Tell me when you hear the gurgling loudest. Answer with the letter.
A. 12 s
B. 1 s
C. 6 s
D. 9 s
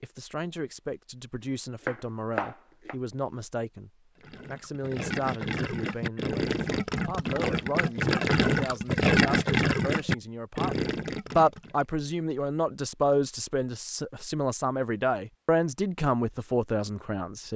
D.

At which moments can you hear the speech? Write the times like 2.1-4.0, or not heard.
0.0-17.5.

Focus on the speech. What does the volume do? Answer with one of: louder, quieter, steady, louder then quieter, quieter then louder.
louder.